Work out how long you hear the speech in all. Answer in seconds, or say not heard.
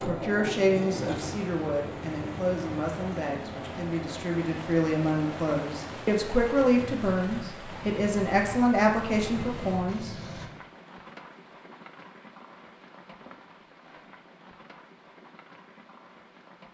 10 s.